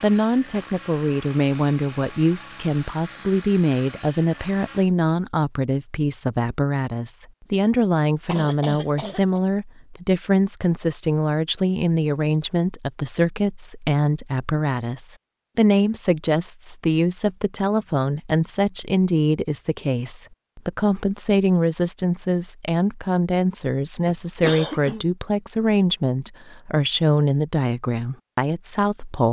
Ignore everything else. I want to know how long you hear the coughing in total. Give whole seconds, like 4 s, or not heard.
2 s.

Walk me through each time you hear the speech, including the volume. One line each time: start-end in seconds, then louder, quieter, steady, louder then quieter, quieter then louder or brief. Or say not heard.
0.0-29.2 steady.